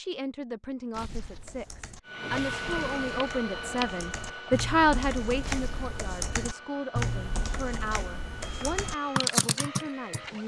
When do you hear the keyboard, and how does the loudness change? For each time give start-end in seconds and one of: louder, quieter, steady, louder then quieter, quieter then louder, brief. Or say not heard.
1.1-10.2 louder.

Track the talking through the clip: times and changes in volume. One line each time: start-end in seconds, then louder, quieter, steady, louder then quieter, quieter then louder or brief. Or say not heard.
0.0-10.4 louder then quieter.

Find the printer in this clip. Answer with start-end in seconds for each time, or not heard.
2.0-10.4.